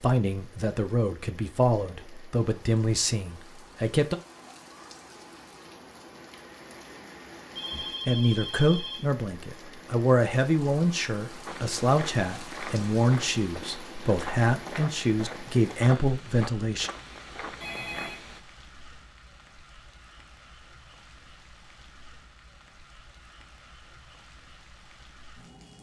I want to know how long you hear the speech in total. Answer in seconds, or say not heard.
13 s.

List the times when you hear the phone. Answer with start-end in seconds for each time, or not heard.
7.5-9.0, 17.6-18.2.